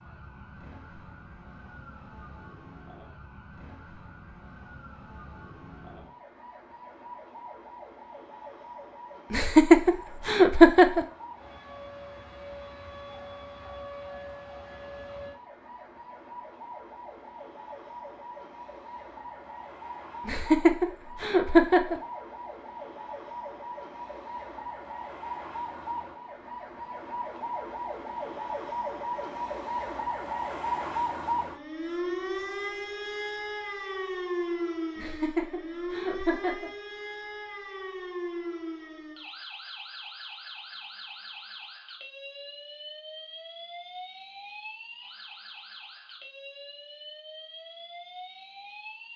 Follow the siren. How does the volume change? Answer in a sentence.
The volume of the siren goes up, then down.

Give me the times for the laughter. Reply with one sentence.
You can hear the laughter from 9.3 to 11.1 s, from 20.2 to 22.0 s and from 35.0 to 36.7 s.